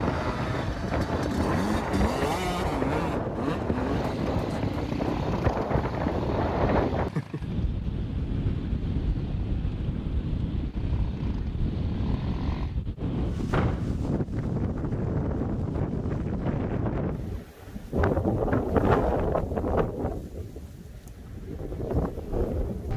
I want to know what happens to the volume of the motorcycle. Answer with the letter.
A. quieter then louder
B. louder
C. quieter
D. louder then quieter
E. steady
C.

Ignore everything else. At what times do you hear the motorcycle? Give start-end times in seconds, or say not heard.
0.0-12.8.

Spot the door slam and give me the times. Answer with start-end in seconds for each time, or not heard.
13.5-13.9.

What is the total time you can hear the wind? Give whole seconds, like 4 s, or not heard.
23 s.